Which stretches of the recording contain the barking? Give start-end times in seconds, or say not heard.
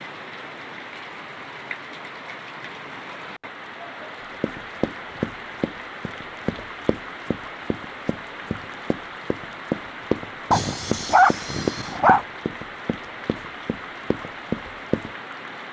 10.5-12.2.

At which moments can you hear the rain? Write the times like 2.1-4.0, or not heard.
0.0-15.6.